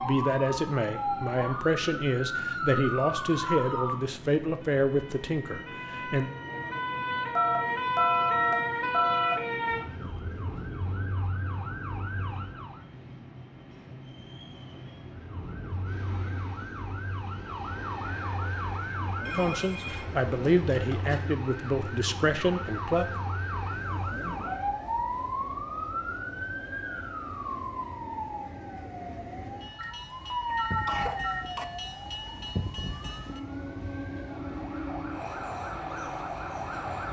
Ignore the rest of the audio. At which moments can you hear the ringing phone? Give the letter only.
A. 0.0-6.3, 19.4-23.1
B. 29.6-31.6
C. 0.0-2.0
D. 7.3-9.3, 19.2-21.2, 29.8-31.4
D.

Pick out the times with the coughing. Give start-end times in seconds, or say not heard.
29.6-31.6.